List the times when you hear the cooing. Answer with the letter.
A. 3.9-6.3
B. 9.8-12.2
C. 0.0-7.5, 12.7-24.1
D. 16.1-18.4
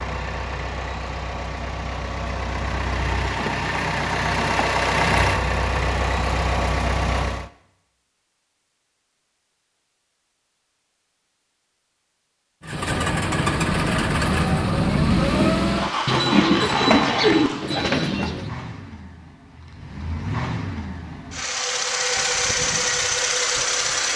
D.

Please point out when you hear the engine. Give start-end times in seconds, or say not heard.
0.0-7.5, 12.7-24.1.